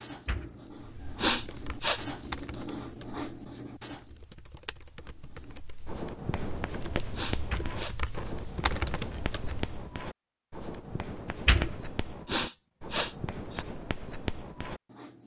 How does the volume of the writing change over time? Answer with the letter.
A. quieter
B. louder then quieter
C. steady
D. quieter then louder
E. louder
A.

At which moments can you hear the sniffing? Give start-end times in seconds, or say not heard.
1.1-2.0, 7.2-8.0, 12.2-13.7.